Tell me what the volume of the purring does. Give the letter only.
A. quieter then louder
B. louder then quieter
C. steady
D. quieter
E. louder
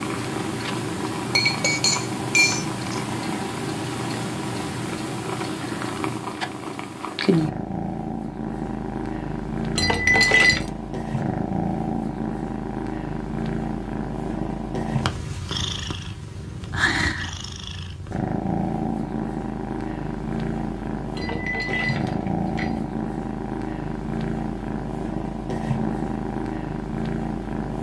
C.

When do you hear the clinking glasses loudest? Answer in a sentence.
The loudest moment of the clinking glasses is at 10 seconds.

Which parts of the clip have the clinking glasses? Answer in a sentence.
You can hear the clinking glasses from 1.4 to 3.0 s, from 9.8 to 10.7 s and from 21.1 to 22.8 s.